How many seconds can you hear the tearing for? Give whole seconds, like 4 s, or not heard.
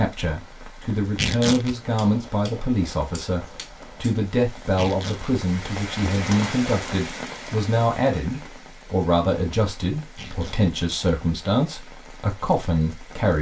2 s.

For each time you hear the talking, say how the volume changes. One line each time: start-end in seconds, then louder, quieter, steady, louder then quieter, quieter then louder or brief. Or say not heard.
0.0-13.3 steady.